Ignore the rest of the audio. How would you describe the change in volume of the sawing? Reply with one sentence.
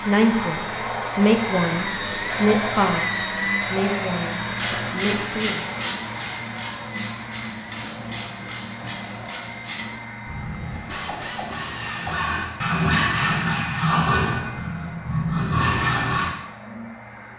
The loudness of the sawing goes up.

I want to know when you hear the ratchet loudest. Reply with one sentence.
The volume of the ratchet peaks at 5 seconds.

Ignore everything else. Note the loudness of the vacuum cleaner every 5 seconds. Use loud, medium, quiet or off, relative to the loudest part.
loud, medium, quiet, quiet.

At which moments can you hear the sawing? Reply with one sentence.
You can hear the sawing from 10.6 to 16.4 s.